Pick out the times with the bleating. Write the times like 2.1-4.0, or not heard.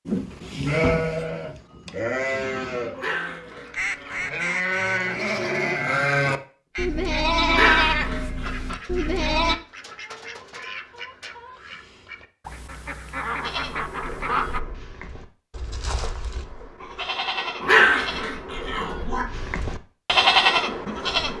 0.1-9.6, 13.3-21.3.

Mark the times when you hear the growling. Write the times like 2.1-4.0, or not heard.
3.0-4.5, 7.5-8.4, 17.6-19.2.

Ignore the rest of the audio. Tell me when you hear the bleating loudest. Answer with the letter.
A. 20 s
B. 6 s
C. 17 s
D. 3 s
A.